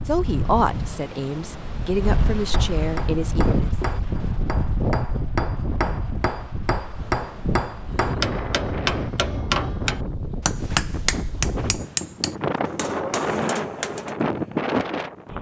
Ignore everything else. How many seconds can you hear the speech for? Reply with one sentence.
The speech can be heard for 4 seconds in total.